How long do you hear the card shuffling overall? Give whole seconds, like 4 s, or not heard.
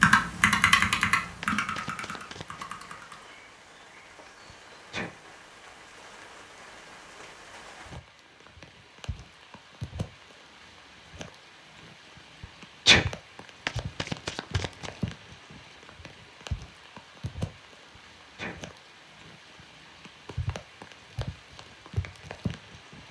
3 s.